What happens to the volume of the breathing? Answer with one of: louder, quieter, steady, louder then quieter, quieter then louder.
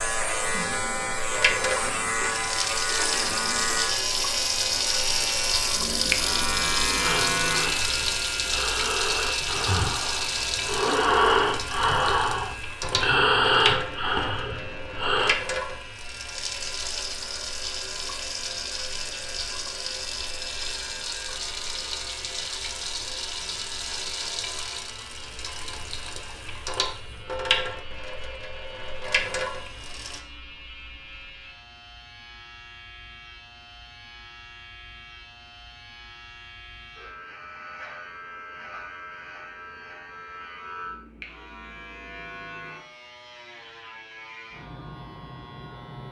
louder.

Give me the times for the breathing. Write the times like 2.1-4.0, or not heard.
7.0-15.3.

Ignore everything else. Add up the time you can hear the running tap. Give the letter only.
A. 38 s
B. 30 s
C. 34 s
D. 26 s
B.